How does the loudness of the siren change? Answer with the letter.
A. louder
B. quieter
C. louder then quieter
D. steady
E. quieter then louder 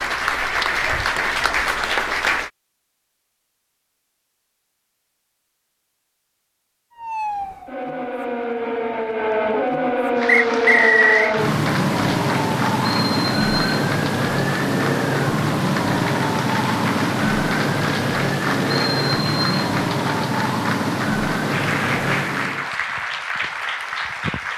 D.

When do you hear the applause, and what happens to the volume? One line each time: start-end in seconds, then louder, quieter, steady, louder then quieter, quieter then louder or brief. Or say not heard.
0.0-2.5 brief
10.2-24.5 steady.